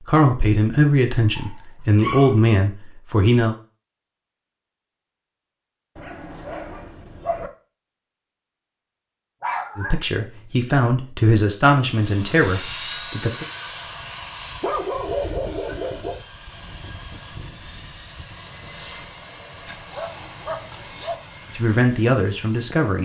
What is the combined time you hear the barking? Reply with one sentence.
The barking can be heard for 7 seconds in total.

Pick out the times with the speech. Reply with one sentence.
The speech can be heard from 0.0 to 3.5 s, from 9.8 to 13.4 s and from 21.6 to 23.0 s.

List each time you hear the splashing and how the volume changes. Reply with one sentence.
You can't hear the splashing here.